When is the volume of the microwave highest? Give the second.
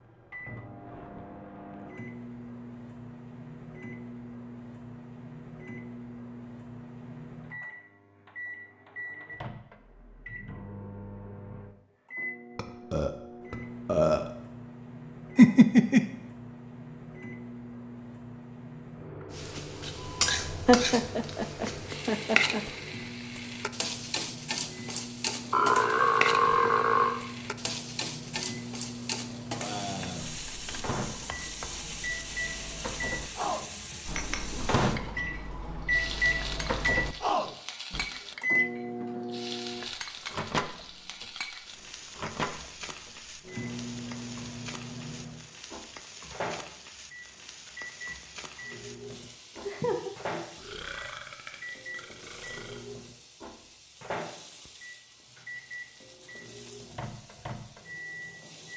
36 s.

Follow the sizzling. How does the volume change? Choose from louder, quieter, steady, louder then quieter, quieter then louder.
quieter.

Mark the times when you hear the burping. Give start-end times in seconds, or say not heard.
12.6-14.3, 25.5-27.2, 50.5-52.8.